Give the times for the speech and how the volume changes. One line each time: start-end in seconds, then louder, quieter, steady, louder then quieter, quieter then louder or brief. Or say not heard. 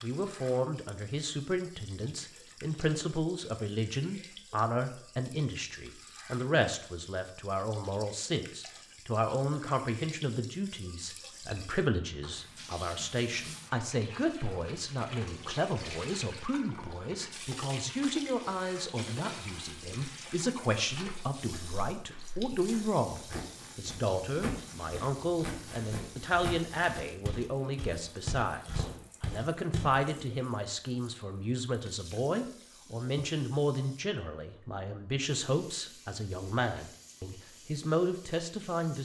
0.0-39.0 steady.